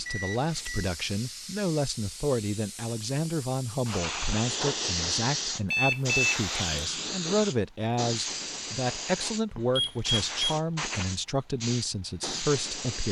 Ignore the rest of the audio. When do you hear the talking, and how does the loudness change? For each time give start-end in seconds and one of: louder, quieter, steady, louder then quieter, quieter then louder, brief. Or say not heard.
0.0-13.0 steady.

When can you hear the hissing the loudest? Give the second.
5 s.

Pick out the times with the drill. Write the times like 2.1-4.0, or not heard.
not heard.